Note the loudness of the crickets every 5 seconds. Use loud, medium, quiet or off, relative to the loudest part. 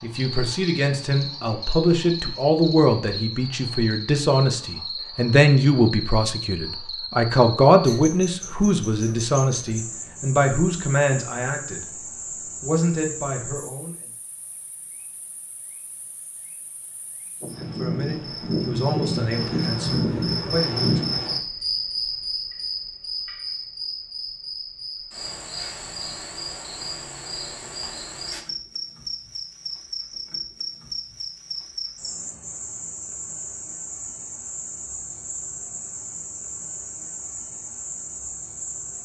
medium, medium, medium, loud, loud, medium, medium, medium.